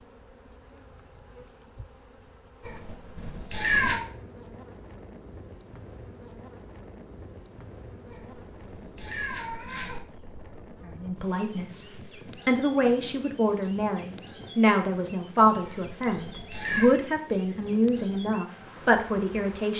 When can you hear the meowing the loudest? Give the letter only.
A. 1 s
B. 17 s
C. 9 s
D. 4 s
D.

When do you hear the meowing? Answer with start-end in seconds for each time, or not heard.
2.6-4.0, 8.1-10.0, 15.6-16.9.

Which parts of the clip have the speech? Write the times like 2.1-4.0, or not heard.
10.8-19.7.